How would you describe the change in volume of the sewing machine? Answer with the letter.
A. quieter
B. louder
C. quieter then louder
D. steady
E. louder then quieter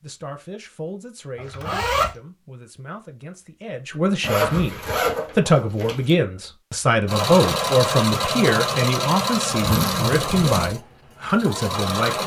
A.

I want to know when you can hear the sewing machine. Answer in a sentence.
The sewing machine can be heard from 7.0 to 12.2 s.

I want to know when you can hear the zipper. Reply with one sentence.
You can hear the zipper from 1.4 to 2.1 s, from 4.2 to 6.1 s and from 9.7 to 10.7 s.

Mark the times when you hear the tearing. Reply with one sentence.
The tearing can't be heard in this clip.